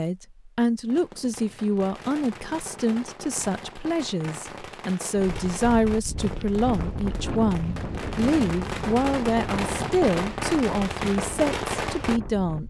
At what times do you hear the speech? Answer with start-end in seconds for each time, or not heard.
0.0-12.6.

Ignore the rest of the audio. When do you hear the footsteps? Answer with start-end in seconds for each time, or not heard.
not heard.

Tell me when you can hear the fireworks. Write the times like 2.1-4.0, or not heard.
0.8-12.2.